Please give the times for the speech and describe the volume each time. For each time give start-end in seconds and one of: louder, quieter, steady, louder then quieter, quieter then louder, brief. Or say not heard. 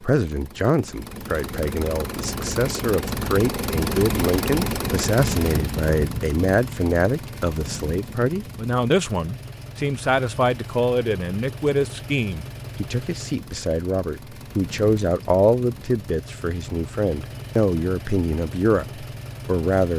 0.0-19.9 steady.